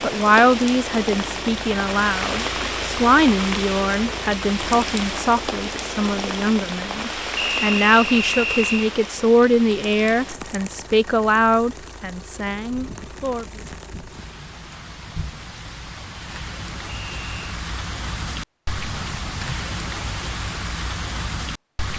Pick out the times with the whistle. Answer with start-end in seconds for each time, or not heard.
7.3-8.8, 16.9-17.4.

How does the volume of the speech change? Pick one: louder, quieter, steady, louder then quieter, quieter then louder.
steady.